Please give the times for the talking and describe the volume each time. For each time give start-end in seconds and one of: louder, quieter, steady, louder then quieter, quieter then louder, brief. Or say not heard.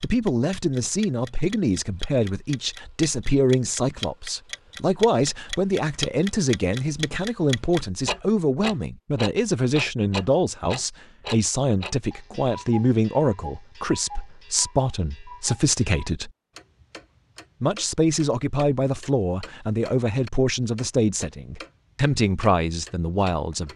0.0-16.3 steady
17.6-23.7 steady.